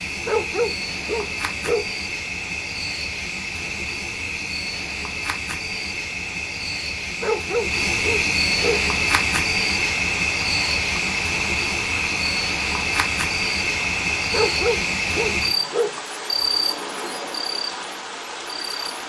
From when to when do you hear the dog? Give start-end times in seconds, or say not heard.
0.2-1.9, 7.2-8.8, 14.3-16.0.